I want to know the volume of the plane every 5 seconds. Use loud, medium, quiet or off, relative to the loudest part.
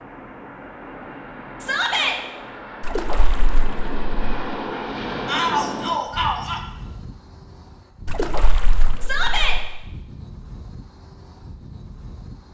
loud, loud, medium.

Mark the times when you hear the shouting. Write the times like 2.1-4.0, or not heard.
1.6-2.2, 5.2-6.6, 9.0-9.6.